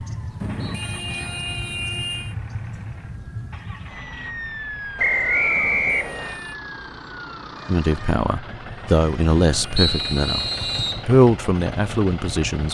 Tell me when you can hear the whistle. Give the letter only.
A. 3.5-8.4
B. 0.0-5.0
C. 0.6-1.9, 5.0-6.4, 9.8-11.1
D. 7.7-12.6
C.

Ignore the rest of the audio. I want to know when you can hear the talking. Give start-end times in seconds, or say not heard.
7.7-12.6.